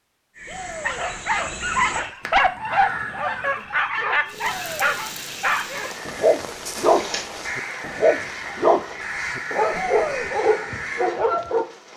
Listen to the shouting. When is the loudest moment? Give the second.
10 s.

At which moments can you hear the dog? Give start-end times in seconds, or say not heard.
0.8-11.7.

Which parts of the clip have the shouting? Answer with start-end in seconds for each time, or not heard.
0.5-1.1, 4.4-5.0, 9.7-10.3.